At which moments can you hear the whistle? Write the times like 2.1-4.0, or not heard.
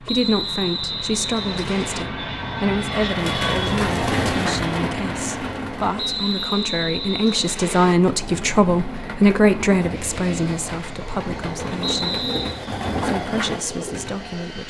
0.1-2.0, 6.0-8.0, 11.8-12.6.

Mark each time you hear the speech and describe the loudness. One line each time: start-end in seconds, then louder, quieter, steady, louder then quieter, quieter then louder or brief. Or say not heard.
0.0-12.2 louder then quieter
13.0-14.6 brief.